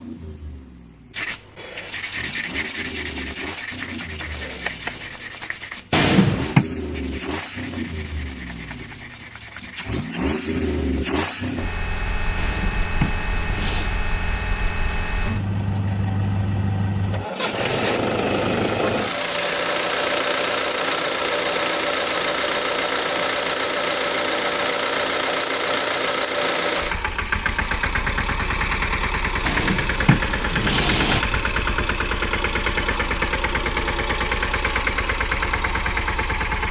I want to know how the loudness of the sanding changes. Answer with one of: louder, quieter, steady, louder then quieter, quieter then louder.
quieter.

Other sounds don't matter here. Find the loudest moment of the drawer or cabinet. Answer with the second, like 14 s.
6 s.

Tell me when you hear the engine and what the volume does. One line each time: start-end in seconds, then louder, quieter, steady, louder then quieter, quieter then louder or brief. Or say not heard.
0.0-36.6 louder.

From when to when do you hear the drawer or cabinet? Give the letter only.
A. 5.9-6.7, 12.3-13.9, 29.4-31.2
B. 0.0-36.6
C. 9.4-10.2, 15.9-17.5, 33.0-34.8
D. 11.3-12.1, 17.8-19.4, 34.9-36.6
A.